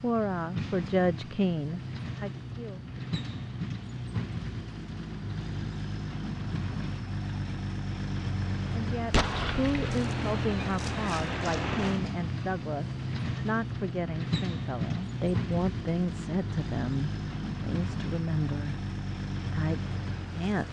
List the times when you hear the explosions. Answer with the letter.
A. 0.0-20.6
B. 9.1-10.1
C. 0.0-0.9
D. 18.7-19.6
B.